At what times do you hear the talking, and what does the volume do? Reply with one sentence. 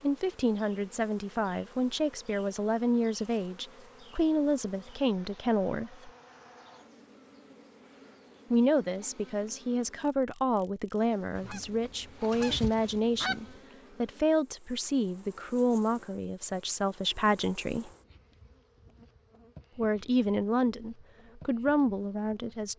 You can hear the talking from 0.0 to 6.1 s, at a steady volume; from 8.5 to 17.9 s, at a steady volume; and briefly from 19.8 to 22.7 s.